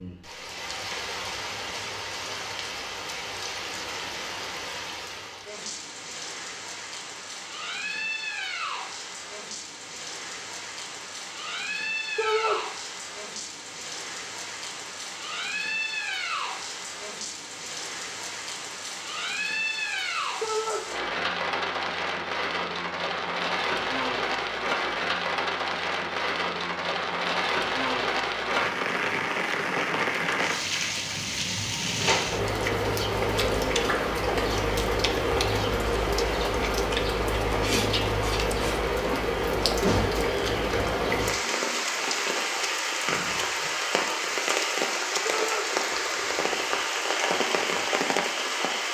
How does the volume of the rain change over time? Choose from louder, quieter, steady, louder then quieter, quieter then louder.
louder.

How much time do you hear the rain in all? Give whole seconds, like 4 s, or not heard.
49 s.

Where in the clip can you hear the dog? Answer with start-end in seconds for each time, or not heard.
not heard.